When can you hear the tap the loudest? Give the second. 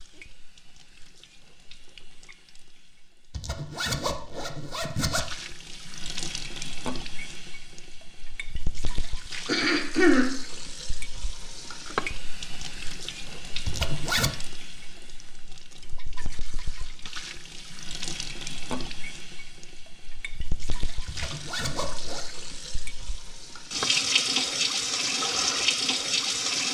24 s.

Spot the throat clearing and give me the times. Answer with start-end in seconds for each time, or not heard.
9.4-10.3.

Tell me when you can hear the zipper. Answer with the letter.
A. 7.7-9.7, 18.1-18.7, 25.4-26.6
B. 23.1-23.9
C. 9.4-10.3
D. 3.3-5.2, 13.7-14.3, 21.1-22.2
D.